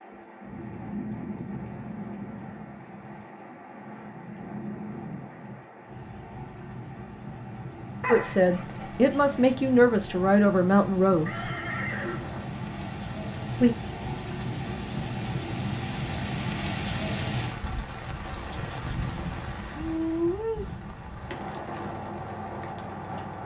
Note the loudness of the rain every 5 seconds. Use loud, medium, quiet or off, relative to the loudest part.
medium, medium, loud, loud, loud.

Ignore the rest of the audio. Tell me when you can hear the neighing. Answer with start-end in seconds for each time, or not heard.
11.2-12.5.